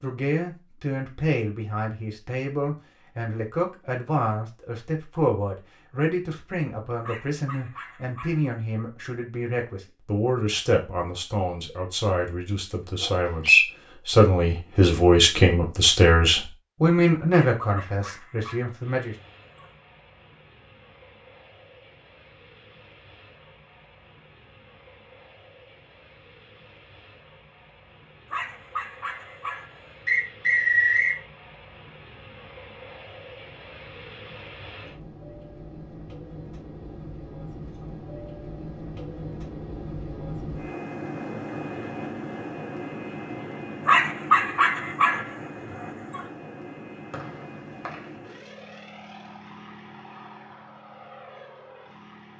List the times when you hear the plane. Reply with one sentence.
You can hear the plane from 18.8 to 52.3 s.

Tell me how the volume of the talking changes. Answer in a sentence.
The loudness of the talking goes up.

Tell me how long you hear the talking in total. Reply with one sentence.
You can hear the talking for 19 seconds altogether.